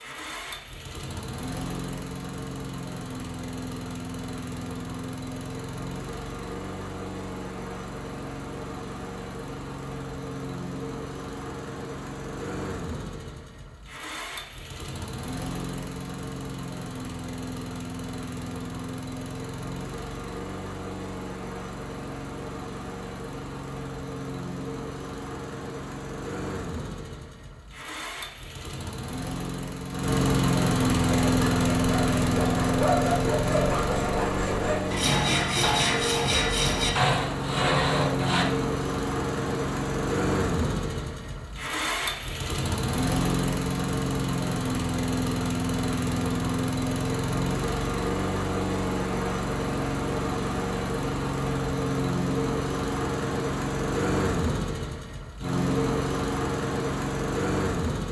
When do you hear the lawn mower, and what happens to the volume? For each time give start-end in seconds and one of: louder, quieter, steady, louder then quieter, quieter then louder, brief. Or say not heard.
0.0-58.0 louder.